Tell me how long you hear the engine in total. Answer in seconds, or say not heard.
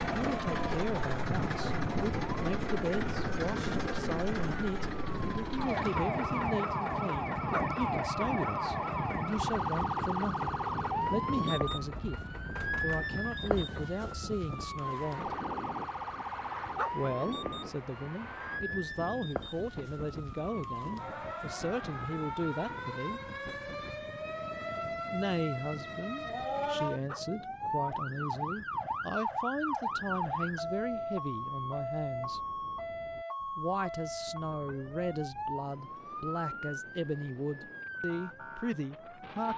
14 s.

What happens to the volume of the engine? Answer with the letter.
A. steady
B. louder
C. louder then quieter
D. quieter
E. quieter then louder
D.